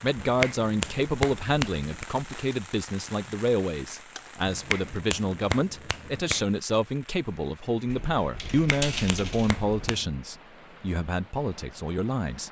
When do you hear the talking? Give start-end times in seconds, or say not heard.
0.0-12.4.